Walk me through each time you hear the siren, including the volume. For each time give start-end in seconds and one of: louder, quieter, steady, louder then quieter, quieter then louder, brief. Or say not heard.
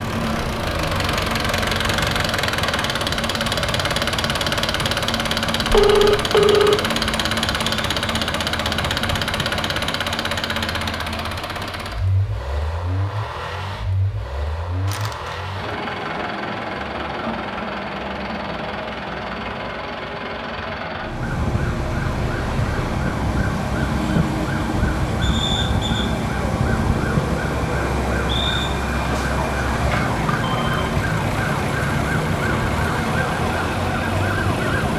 0.0-9.8 steady
21.0-34.9 steady.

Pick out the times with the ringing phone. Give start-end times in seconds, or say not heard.
5.7-6.8, 14.8-15.4, 30.3-30.9.